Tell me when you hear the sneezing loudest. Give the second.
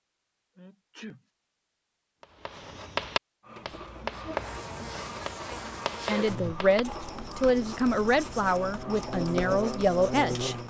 6 s.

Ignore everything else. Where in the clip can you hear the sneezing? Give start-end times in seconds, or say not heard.
0.6-1.2, 6.0-6.4.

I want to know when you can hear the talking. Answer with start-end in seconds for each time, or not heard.
6.0-10.6.